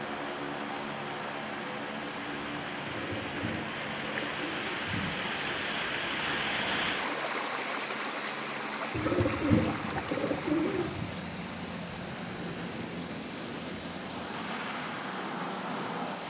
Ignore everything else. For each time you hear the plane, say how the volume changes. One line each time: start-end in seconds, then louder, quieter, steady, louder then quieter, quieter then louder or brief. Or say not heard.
0.0-16.2 quieter then louder.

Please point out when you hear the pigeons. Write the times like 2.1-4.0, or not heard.
2.9-5.2, 8.9-11.1.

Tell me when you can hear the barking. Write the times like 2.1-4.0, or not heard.
not heard.